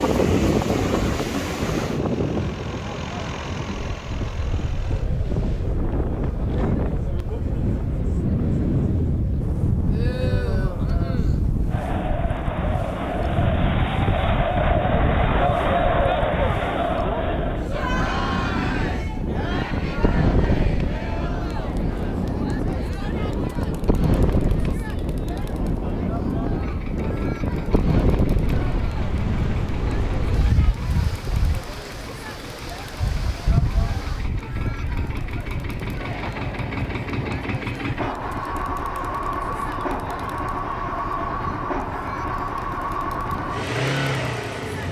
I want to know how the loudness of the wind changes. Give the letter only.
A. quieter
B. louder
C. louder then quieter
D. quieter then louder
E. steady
A.